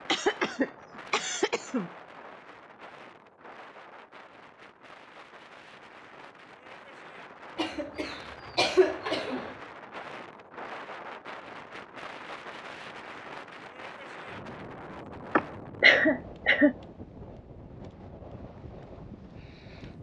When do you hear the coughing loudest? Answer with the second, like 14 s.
16 s.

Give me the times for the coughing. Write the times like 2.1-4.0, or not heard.
0.1-1.9, 7.5-9.6, 15.3-16.8.